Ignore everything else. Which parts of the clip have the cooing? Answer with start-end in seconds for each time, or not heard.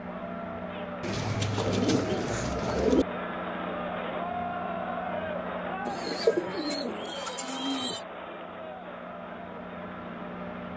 1.0-3.0, 5.8-8.0.